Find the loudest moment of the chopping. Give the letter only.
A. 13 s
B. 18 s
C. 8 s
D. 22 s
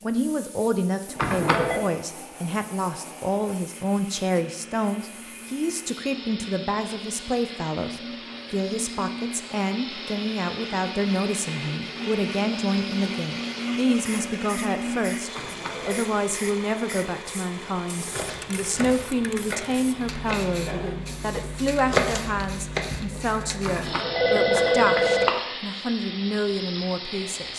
D.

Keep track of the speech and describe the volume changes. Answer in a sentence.
The volume of the speech stays about the same.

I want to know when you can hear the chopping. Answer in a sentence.
You can hear the chopping from 18.1 to 23.1 s.